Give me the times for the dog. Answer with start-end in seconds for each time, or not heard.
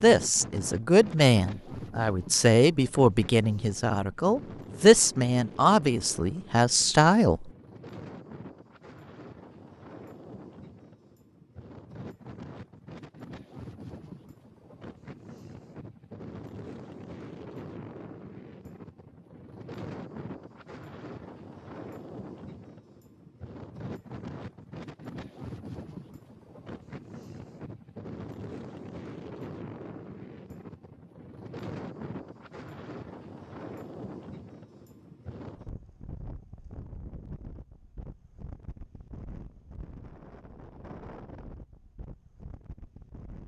not heard.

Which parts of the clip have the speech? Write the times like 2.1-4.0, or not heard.
0.0-7.5.